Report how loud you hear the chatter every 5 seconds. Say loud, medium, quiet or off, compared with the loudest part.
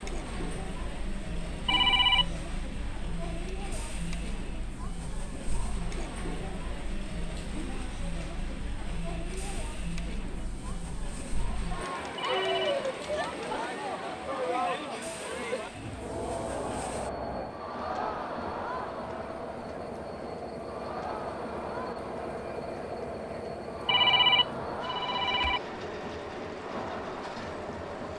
medium, medium, loud, loud, medium, medium.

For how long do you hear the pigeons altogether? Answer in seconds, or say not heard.
not heard.